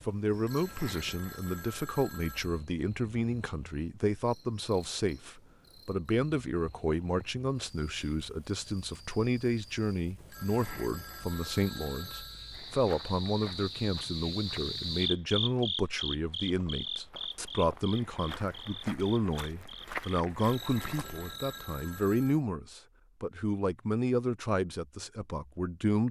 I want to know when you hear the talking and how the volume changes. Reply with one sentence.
The talking can be heard from 0.1 to 26.0 s, at a steady volume.